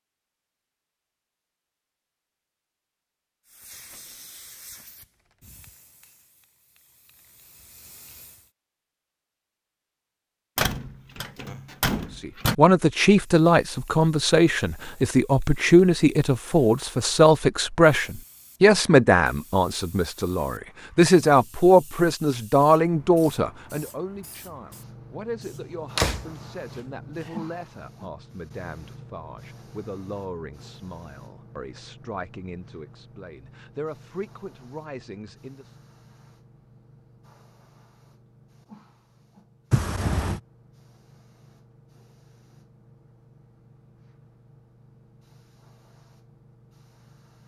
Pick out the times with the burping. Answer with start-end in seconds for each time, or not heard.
not heard.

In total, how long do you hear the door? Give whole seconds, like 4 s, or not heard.
4 s.